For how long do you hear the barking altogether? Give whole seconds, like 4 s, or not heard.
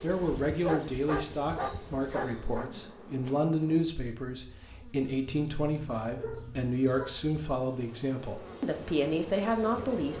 4 s.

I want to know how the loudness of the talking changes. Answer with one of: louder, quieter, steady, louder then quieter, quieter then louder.
steady.